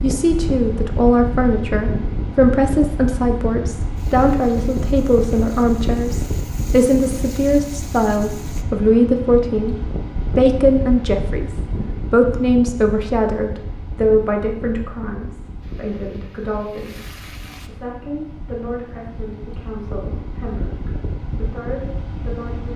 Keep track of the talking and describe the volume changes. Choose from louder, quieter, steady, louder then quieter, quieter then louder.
quieter.